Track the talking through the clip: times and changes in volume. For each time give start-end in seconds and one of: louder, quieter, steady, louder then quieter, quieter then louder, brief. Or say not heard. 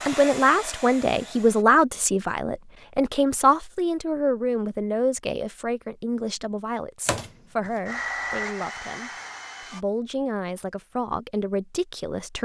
0.0-9.1 quieter
9.7-12.4 brief.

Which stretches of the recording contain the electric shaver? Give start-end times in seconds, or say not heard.
not heard.